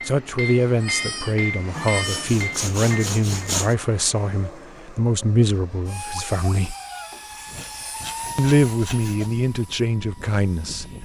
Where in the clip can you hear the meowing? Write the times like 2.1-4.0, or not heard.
0.8-2.4, 6.1-7.2.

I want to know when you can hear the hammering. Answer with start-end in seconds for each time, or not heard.
0.0-3.5.